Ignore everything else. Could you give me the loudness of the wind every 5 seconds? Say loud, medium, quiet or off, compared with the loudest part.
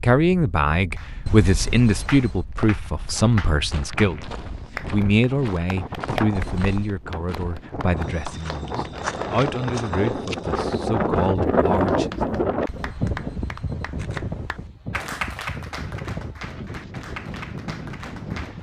quiet, medium, loud, medium.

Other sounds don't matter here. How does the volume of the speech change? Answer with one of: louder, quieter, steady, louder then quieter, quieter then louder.
quieter.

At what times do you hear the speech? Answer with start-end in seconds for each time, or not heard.
0.0-12.1.